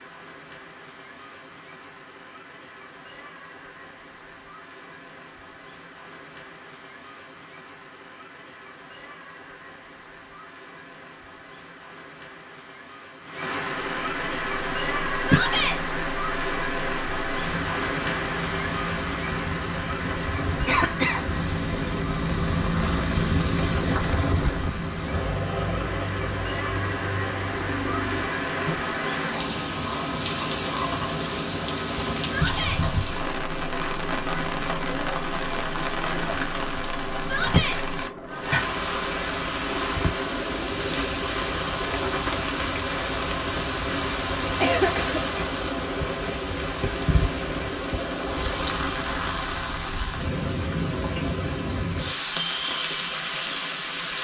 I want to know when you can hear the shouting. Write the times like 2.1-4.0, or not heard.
15.2-15.8, 32.2-32.8, 37.2-37.8.